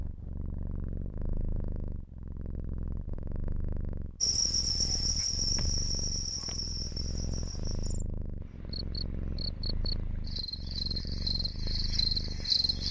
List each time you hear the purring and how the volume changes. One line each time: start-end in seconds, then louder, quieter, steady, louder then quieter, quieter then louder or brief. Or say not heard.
0.0-12.8 steady.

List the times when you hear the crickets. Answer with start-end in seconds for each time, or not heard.
4.2-12.8.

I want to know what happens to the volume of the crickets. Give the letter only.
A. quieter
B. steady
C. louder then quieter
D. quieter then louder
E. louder
D.